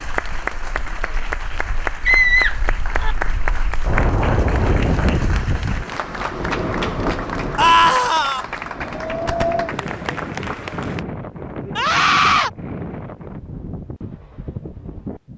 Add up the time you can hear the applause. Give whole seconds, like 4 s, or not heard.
11 s.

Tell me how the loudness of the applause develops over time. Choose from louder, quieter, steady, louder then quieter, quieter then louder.
steady.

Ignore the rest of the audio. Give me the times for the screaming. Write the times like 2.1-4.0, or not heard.
2.0-3.1, 7.5-8.4, 11.8-12.5.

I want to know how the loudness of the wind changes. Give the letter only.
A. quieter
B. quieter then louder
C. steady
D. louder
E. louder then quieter
E.